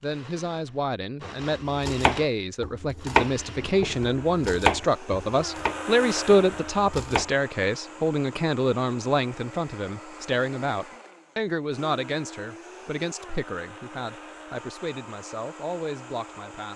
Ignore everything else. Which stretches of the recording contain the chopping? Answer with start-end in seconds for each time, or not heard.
1.4-7.2.